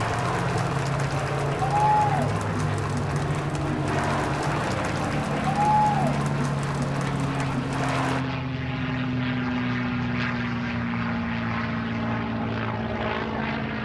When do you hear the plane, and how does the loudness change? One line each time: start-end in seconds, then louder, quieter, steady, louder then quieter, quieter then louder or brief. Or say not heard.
0.0-13.8 steady.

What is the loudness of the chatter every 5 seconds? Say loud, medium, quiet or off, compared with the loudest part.
loud, loud, off.